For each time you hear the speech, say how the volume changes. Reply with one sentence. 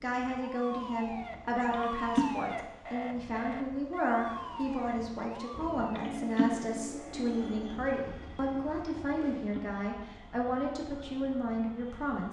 You can hear the speech from 0.0 to 12.2 s, at a steady volume.